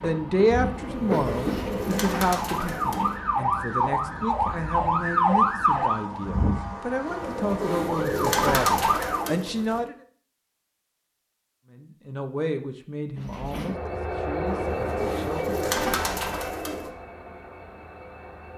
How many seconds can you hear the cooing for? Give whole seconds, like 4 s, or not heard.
8 s.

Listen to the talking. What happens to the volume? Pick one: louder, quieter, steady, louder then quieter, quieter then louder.
quieter.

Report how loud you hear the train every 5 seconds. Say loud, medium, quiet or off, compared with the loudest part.
loud, off, loud, medium.